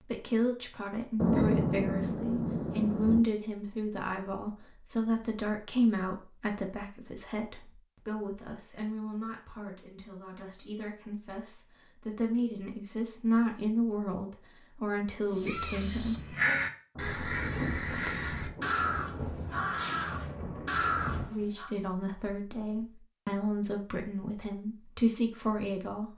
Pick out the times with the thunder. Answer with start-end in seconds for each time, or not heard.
1.2-3.2, 16.9-21.3.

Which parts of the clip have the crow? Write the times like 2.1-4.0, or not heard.
15.3-21.7.